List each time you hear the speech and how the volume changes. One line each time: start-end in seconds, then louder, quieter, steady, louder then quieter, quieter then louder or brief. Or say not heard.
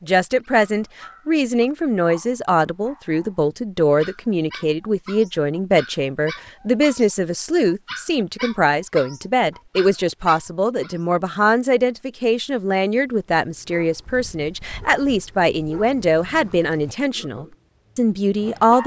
0.0-18.8 steady.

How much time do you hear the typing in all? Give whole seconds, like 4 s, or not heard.
not heard.